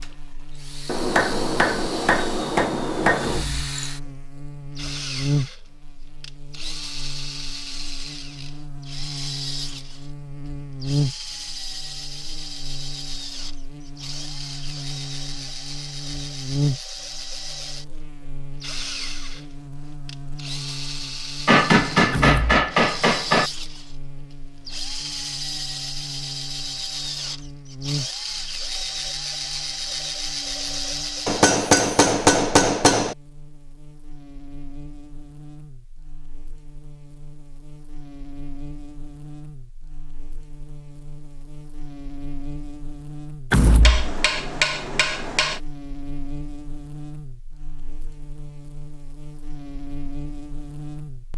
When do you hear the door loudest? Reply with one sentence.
The volume of the door peaks at 44 seconds.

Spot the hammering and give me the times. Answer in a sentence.
The hammering can be heard from 0.8 to 3.5 s, from 21.4 to 23.5 s, from 31.2 to 33.1 s and from 43.8 to 45.6 s.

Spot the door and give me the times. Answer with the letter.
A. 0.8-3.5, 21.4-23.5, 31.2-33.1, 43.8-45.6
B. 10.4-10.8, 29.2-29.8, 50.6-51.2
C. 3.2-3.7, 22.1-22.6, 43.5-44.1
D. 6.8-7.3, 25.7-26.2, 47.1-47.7
C.